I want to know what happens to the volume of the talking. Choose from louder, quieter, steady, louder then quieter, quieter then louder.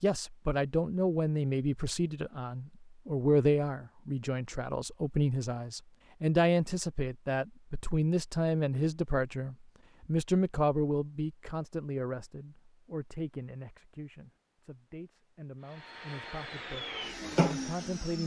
quieter.